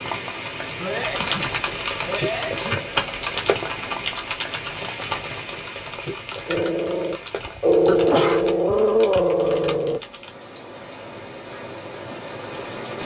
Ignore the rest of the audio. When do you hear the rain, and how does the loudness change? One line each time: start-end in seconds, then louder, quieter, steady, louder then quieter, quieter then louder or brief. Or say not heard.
0.0-13.0 quieter then louder.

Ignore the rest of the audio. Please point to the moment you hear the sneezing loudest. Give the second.
8 s.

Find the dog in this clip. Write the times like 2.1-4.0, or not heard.
6.5-10.0.